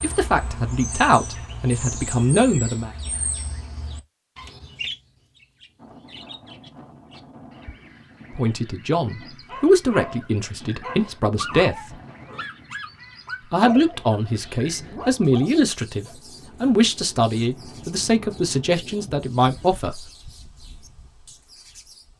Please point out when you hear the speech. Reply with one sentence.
You can hear the speech from 0.0 to 2.9 s, from 8.3 to 11.9 s and from 13.5 to 20.1 s.